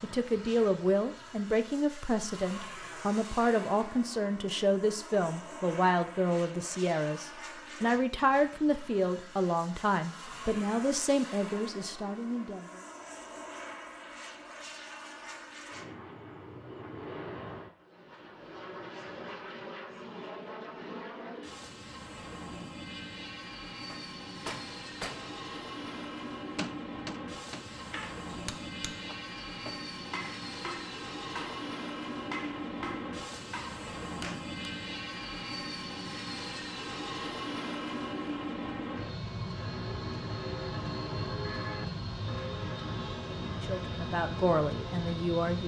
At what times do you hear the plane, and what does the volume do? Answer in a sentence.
The plane can be heard from 0.0 to 45.6 s, getting louder.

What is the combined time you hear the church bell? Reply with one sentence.
The church bell can be heard for 6 seconds in total.